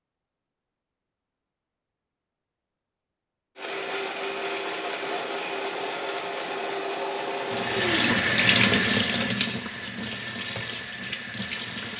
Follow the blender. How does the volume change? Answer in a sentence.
The volume of the blender stays about the same.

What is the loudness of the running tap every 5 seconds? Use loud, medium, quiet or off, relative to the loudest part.
off, loud, medium.